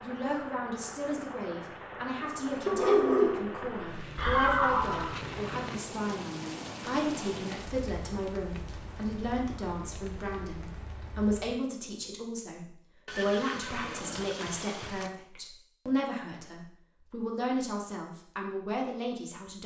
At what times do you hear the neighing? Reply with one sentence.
The neighing can be heard from 4.2 to 5.2 s and from 13.1 to 15.1 s.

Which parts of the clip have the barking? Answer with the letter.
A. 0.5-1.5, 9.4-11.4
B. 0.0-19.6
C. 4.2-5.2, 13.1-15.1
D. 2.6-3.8
D.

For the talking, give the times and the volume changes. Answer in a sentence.
The talking can be heard from 0.0 to 19.6 s, at a steady volume.